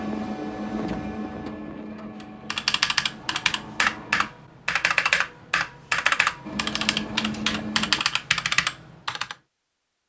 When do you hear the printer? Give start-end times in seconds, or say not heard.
0.0-4.3, 6.4-8.1.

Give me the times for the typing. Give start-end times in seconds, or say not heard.
2.2-9.3.